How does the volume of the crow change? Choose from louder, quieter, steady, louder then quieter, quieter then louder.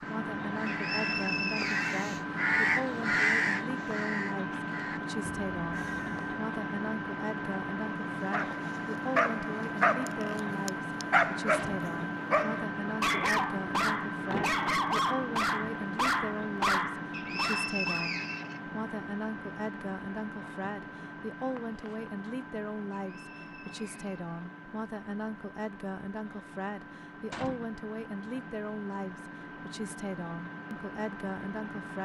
louder then quieter.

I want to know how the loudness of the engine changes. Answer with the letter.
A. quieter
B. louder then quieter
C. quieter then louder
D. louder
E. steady
A.